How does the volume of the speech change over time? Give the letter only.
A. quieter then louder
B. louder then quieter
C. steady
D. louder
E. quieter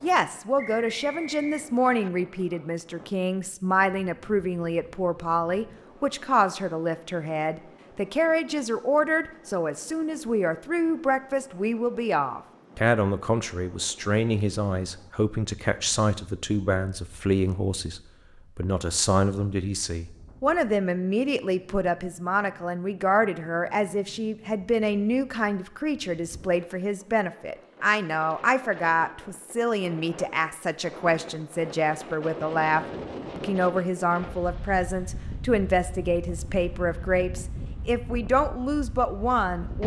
C.